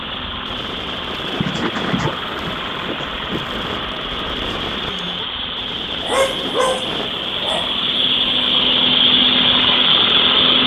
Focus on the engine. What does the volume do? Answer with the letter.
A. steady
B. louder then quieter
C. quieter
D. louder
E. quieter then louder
D.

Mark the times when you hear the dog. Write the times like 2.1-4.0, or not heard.
1.4-3.5, 6.0-8.6.